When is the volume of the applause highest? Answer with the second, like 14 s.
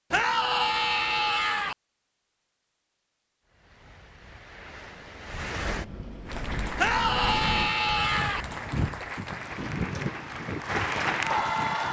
11 s.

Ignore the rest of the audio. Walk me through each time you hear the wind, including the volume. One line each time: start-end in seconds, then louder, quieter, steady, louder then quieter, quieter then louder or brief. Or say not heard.
3.5-11.8 louder.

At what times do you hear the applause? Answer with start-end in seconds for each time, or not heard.
6.2-11.8.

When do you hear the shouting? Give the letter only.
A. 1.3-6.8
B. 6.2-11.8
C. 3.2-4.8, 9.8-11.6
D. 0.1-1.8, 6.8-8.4
D.